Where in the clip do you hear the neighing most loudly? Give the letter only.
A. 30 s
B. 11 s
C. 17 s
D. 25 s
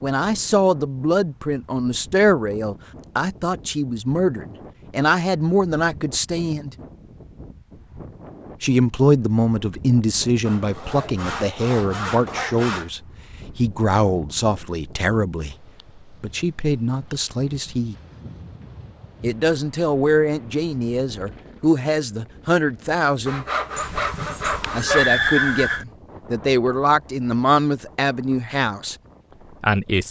D.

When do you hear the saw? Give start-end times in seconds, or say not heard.
10.4-12.9, 23.2-25.1.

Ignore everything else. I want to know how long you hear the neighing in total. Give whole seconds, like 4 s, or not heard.
2 s.